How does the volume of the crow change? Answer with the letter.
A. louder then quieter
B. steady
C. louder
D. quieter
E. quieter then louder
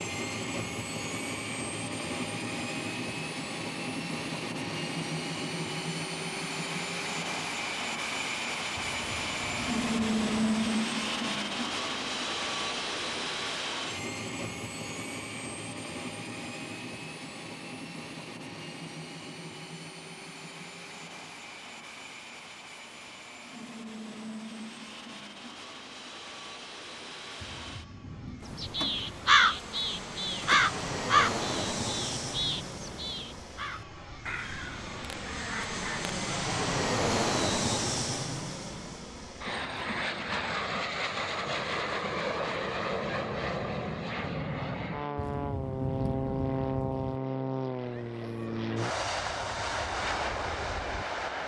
D.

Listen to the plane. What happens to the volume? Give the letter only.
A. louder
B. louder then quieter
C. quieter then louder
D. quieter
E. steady
C.